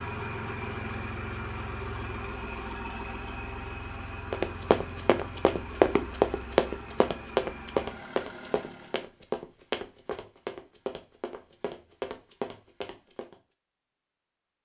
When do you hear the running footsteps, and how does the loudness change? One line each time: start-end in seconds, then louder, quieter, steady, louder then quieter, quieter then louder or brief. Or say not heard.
4.3-13.3 quieter.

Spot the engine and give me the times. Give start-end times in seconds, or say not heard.
0.0-9.2.